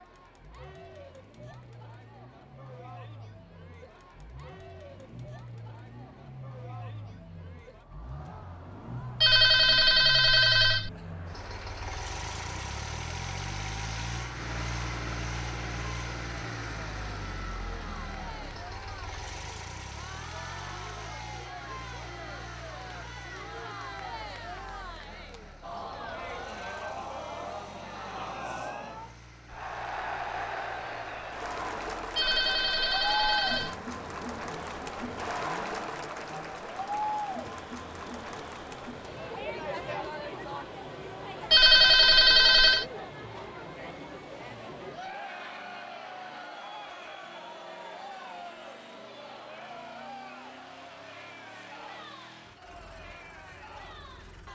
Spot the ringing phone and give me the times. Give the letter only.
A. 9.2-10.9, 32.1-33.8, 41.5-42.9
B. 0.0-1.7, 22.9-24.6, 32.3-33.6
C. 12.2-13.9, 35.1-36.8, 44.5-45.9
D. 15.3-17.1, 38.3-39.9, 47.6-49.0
A.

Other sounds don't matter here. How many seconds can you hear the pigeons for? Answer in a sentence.
You can't hear the pigeons here.